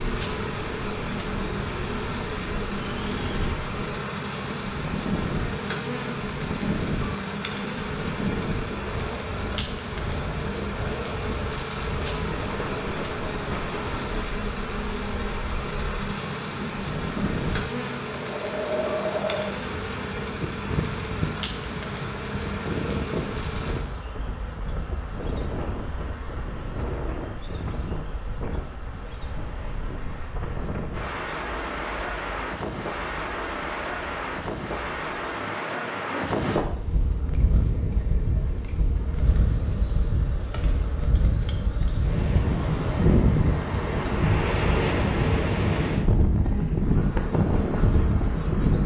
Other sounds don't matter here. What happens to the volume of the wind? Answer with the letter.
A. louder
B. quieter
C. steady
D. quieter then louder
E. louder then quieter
A.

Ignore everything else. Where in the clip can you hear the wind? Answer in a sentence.
The wind can be heard from 0.0 to 48.8 s.